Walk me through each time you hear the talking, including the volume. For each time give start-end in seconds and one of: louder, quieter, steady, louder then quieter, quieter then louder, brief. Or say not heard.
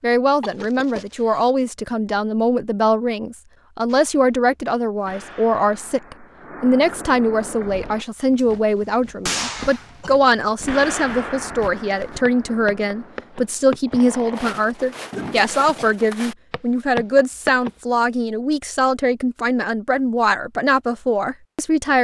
0.0-22.0 steady.